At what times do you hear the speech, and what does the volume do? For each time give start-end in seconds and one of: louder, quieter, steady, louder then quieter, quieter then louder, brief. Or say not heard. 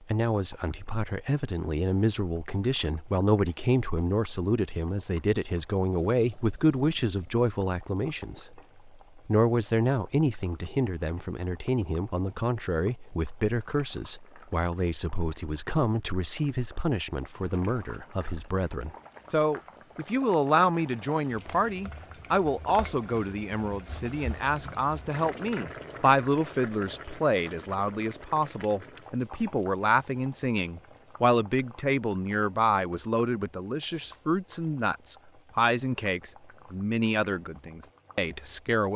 0.0-38.9 steady.